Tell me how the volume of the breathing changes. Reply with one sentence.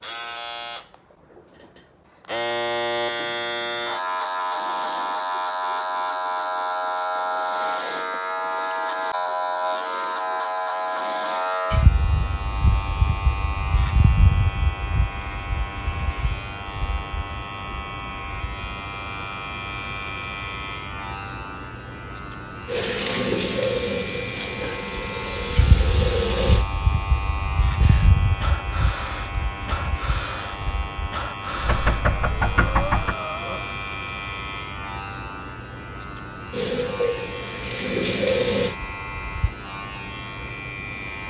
The volume of the breathing stays about the same.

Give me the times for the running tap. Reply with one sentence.
You can hear the running tap from 22.6 to 26.6 s and from 36.5 to 38.8 s.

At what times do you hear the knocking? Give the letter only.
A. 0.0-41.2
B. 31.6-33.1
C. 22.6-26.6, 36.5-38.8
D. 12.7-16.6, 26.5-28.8
B.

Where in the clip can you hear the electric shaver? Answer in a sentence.
You can hear the electric shaver from 0.0 to 41.2 s.